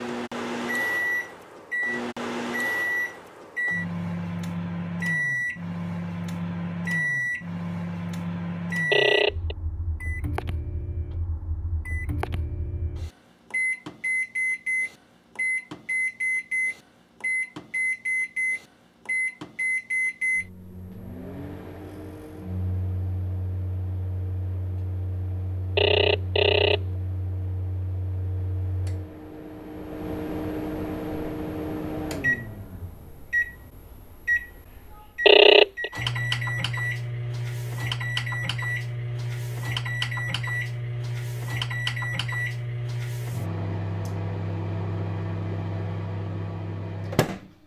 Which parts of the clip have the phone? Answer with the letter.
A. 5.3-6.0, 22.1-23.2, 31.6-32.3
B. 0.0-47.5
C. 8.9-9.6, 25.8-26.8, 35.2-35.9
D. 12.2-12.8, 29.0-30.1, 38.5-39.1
C.